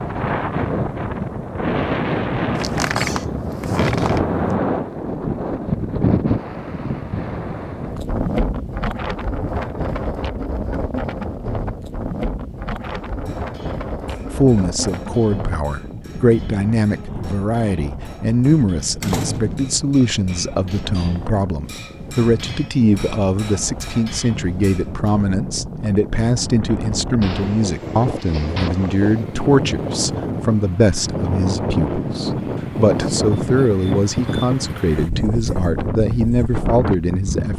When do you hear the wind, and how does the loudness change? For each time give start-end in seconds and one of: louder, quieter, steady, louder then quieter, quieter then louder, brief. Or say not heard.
0.0-37.5 quieter then louder.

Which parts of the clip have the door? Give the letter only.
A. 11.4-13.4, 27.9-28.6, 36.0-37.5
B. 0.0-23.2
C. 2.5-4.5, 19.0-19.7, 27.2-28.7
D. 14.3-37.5
C.